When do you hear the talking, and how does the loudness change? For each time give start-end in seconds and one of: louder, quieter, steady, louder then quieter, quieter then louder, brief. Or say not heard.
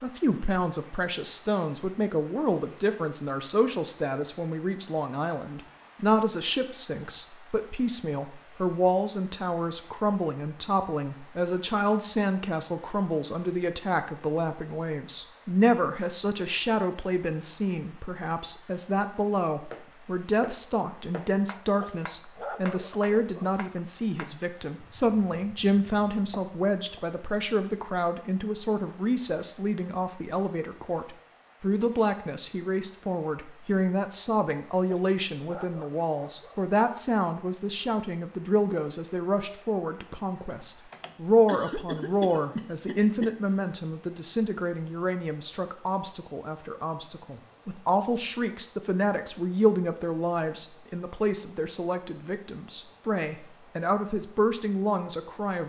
0.0-55.6 steady.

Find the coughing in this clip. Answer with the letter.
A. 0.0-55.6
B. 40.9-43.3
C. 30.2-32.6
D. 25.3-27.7
B.